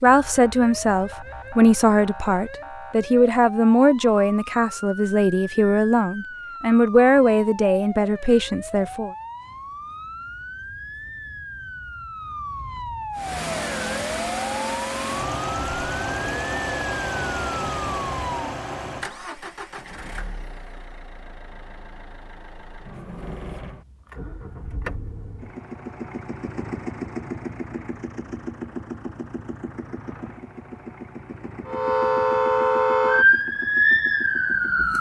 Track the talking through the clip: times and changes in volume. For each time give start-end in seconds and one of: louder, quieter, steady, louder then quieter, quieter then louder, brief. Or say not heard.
0.0-9.1 steady.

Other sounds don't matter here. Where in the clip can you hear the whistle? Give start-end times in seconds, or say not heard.
not heard.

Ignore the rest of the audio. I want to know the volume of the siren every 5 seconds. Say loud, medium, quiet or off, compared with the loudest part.
quiet, quiet, quiet, quiet, off, off, loud.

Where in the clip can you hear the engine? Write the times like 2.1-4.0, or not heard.
13.2-34.9.